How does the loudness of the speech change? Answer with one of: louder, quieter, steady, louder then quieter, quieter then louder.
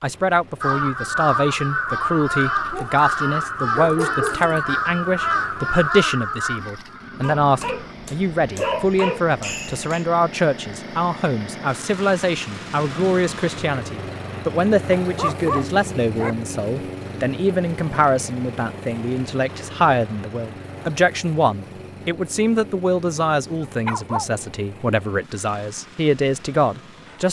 steady.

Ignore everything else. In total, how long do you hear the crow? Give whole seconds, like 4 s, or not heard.
7 s.